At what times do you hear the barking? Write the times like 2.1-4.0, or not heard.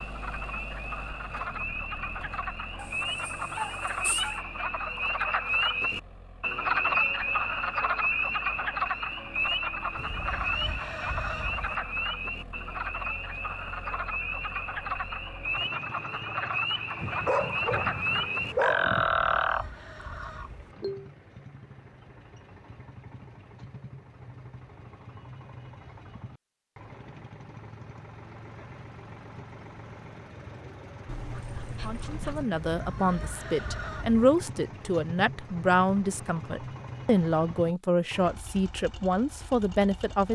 2.8-4.4, 16.9-19.1, 31.1-32.5.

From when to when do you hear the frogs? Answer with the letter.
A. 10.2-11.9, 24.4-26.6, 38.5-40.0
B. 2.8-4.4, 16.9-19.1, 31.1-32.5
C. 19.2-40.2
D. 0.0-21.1
D.